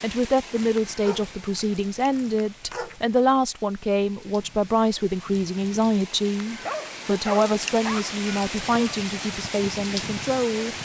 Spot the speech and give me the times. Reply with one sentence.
The speech can be heard from 0.0 to 10.8 s.